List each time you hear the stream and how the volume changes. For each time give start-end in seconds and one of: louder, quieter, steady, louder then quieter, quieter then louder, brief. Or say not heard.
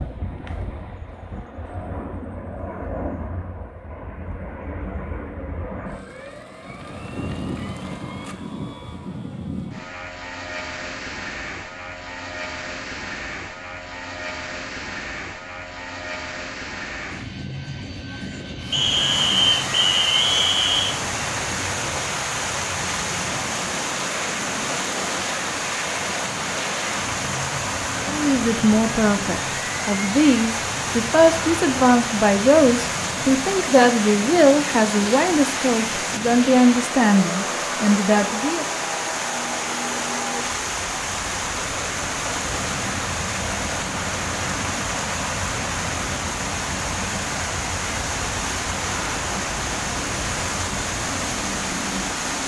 18.6-52.4 steady.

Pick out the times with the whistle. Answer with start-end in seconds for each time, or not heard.
18.7-20.9.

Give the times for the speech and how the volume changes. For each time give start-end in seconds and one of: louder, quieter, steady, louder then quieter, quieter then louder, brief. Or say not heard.
28.0-38.6 steady.